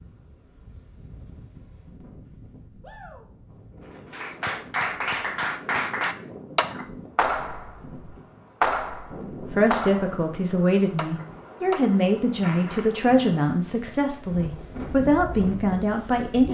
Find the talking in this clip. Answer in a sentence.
The talking can be heard from 9.5 to 16.4 s.